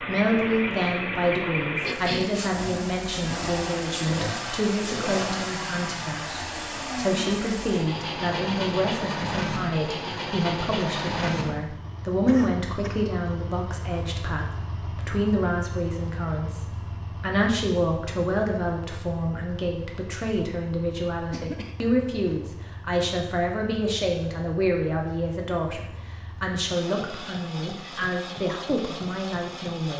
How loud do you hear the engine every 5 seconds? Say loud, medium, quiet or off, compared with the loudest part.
loud, loud, loud, medium, quiet, medium.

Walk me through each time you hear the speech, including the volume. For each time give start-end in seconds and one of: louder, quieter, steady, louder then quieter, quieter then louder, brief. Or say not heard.
0.0-29.9 steady.